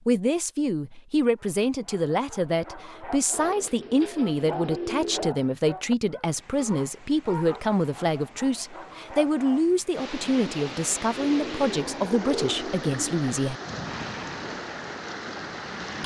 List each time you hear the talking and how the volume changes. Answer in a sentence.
The talking can be heard from 0.1 to 13.6 s, at a steady volume.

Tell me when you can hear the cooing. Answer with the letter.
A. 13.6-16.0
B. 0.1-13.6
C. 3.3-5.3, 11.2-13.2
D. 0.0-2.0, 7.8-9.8
C.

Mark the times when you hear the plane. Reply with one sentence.
You can hear the plane from 13.6 to 16.0 s.